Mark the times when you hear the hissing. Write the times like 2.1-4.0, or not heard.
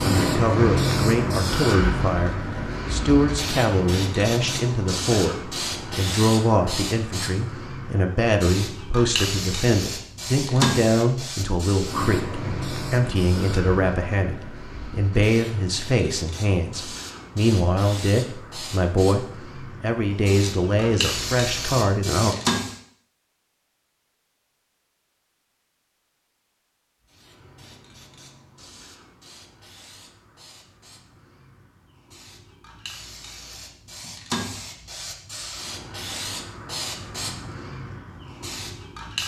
0.0-22.8, 27.1-39.2.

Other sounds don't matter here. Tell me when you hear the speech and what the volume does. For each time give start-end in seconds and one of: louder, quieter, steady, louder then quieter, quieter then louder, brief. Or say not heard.
0.0-22.4 steady.